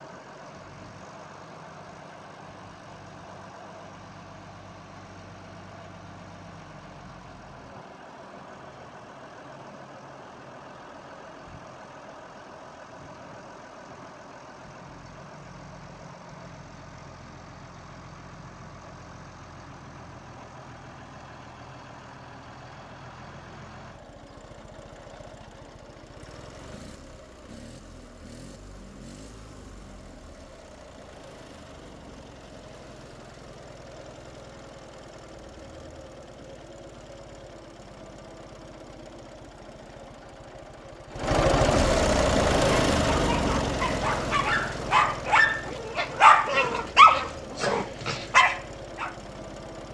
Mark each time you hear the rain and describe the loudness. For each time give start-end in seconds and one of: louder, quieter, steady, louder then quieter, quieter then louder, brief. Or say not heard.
not heard.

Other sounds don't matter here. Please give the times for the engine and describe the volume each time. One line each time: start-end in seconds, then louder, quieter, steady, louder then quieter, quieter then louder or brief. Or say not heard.
0.0-49.8 louder.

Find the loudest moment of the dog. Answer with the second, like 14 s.
47 s.